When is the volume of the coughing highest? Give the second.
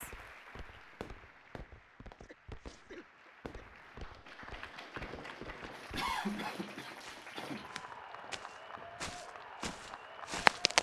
6 s.